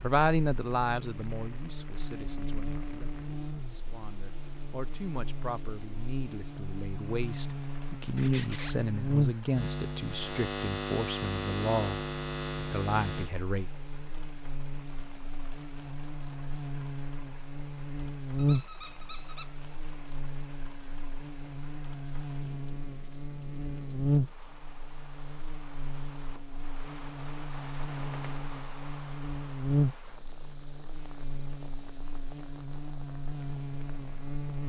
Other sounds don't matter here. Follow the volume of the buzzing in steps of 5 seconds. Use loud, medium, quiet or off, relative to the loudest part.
medium, loud, loud, loud, loud, loud, medium.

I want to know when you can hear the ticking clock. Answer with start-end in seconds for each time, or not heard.
not heard.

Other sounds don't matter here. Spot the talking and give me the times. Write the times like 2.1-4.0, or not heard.
0.0-13.7.